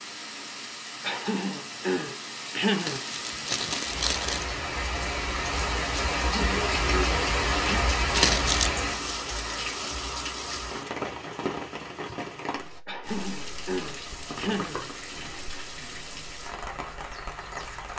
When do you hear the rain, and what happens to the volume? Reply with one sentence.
You can hear the rain from 0.0 to 17.9 s, getting louder then quieter.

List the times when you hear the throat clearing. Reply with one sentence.
The throat clearing can be heard from 1.0 to 3.0 s, from 6.2 to 7.8 s and from 12.8 to 14.8 s.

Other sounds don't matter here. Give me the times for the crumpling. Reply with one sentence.
You can hear the crumpling from 2.8 to 4.5 s, from 8.2 to 8.8 s and from 14.2 to 15.0 s.